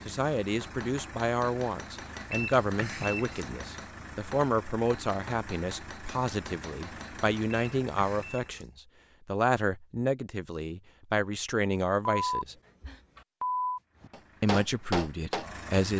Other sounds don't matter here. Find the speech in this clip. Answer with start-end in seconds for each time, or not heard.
0.1-12.6, 14.4-15.9.